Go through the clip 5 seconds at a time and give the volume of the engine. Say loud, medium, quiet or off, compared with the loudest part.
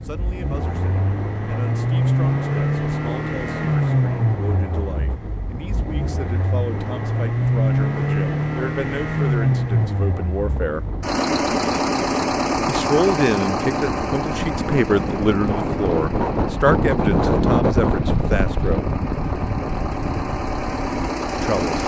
loud, loud, loud, medium, loud.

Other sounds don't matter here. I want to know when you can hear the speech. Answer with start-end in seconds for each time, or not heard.
0.0-10.8, 12.7-18.9, 21.3-21.8.